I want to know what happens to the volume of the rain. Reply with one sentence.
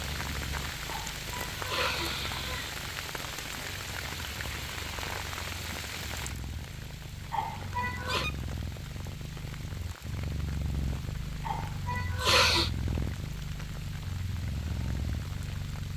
The volume of the rain goes down.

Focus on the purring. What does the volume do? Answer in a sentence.
The volume of the purring goes up.